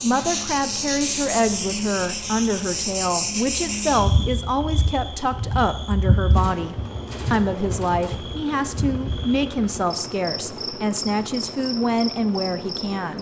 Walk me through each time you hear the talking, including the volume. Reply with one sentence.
The talking can be heard from 0.0 to 13.1 s, at a steady volume.